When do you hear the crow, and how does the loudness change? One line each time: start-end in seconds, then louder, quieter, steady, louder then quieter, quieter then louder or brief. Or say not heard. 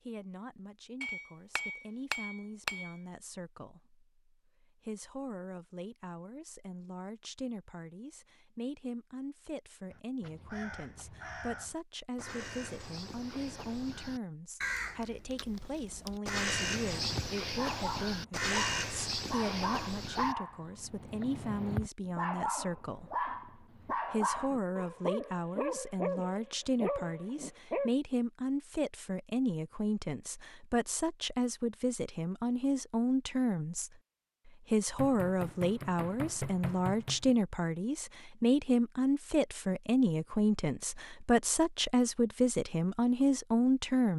9.9-20.4 louder.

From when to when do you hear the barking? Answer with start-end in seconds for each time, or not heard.
16.4-27.9.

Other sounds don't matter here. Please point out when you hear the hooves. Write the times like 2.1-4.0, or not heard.
not heard.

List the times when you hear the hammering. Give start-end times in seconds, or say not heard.
1.0-3.0, 35.0-37.4.